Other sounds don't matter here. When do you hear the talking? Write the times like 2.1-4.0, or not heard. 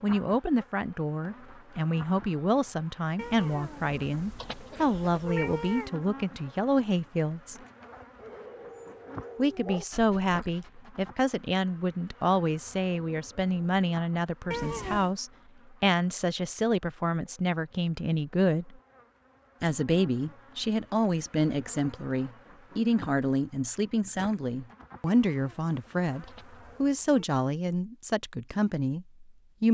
0.0-7.5, 9.3-18.8, 19.6-29.6.